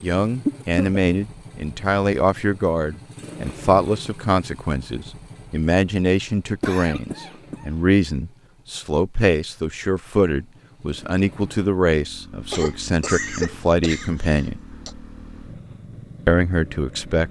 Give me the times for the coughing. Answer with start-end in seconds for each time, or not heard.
0.5-1.0, 6.6-7.7, 12.5-14.9.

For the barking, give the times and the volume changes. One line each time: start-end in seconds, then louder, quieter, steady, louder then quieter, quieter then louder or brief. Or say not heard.
not heard.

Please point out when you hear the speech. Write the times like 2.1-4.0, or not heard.
0.0-14.6, 16.2-17.2.